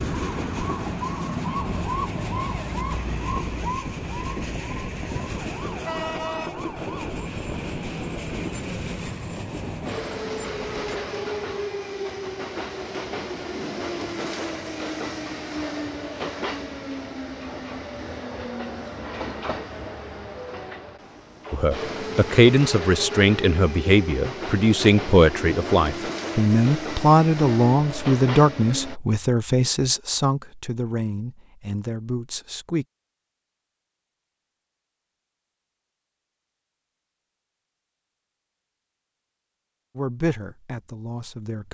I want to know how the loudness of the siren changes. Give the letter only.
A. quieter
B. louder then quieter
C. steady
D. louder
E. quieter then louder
A.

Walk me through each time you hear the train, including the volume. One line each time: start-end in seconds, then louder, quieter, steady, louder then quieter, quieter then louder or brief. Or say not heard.
0.0-29.0 steady.